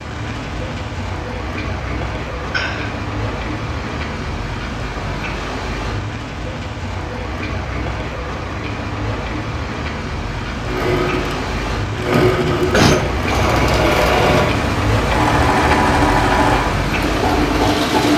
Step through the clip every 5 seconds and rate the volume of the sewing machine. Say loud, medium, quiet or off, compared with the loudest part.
off, off, loud, loud.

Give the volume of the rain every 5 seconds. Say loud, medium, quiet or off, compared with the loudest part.
medium, medium, loud, loud.